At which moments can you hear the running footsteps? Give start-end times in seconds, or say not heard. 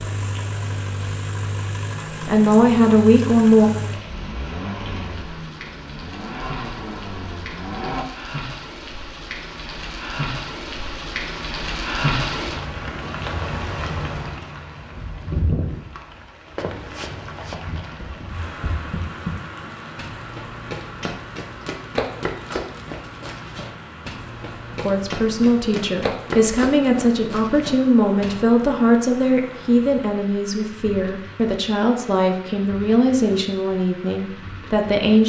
16.6-28.4.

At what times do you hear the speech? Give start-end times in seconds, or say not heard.
2.2-3.7, 24.9-35.2.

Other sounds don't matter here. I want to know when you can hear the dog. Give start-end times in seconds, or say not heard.
not heard.